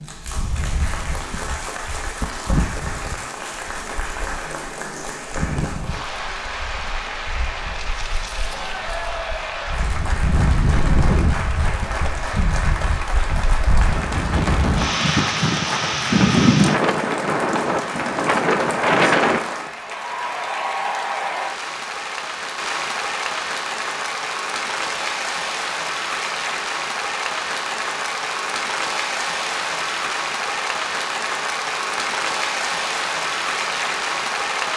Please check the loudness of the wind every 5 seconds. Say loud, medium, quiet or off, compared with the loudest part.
quiet, quiet, medium, loud, off, off, off.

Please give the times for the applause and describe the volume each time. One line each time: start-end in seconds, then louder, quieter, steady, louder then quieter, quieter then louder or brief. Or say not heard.
0.0-34.7 louder.